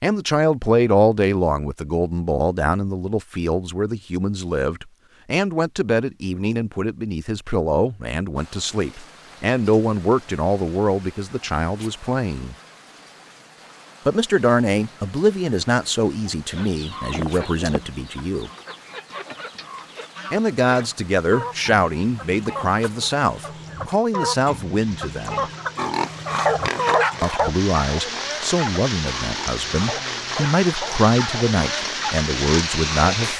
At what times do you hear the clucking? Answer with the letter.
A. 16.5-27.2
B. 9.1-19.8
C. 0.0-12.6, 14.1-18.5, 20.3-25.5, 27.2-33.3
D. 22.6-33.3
A.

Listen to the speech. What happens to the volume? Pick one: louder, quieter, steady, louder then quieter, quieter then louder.
steady.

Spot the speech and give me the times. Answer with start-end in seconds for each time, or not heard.
0.0-12.6, 14.1-18.5, 20.3-25.5, 27.2-33.3.